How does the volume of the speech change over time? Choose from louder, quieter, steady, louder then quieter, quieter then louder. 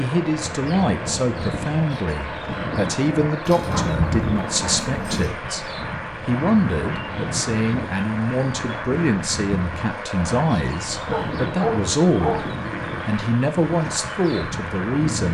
steady.